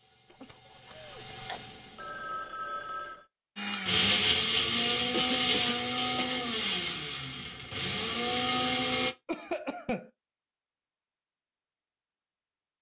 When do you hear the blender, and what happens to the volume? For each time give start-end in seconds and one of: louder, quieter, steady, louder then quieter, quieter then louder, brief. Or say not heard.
3.5-9.2 quieter then louder.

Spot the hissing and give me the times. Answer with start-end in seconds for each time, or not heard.
0.0-3.2.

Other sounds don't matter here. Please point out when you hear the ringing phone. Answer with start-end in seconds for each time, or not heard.
1.5-3.2.